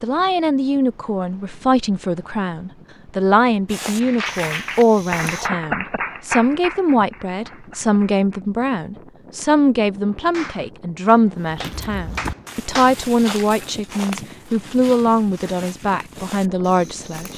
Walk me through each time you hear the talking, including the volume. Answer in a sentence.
The talking can be heard from 0.0 to 17.3 s, at a steady volume.